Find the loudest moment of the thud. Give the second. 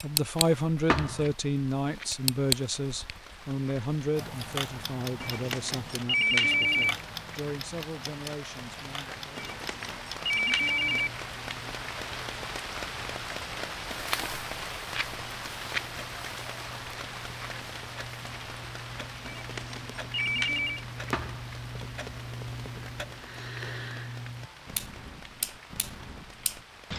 1 s.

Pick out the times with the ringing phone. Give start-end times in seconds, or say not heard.
5.2-7.0, 9.3-11.2, 19.2-20.9.